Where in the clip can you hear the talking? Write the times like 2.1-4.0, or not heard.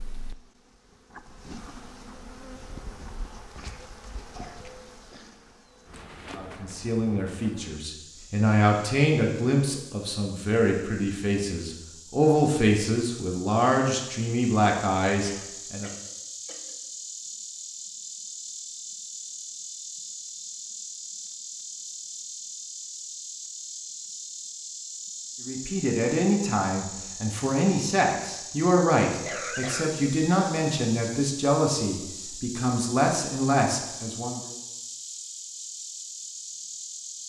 6.3-15.9, 25.4-34.5.